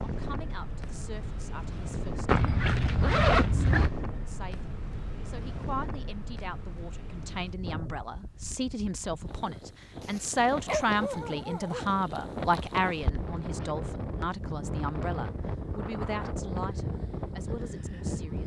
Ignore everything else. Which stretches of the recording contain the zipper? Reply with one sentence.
The zipper can be heard from 2.2 to 3.9 s and from 13.0 to 13.7 s.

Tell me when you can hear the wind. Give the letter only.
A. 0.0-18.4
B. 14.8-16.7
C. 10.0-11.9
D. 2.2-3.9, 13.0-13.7
A.